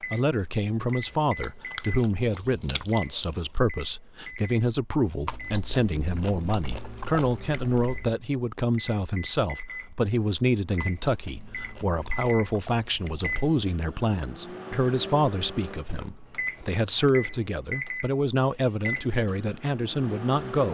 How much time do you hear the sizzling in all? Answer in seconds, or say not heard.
not heard.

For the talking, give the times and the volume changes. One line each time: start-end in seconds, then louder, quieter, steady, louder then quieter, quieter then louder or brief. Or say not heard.
0.0-20.6 steady.